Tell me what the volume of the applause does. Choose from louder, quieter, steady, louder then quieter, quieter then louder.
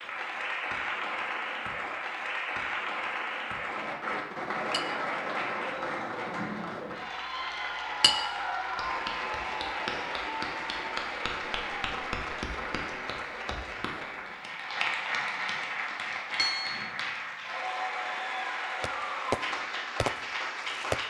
steady.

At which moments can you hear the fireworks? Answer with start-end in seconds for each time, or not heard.
18.8-21.0.